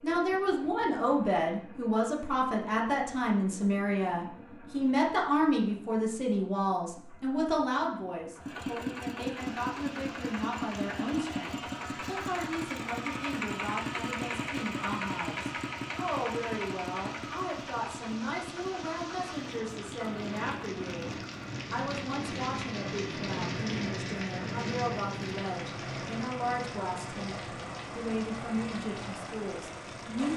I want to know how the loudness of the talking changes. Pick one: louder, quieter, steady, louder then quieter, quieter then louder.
quieter.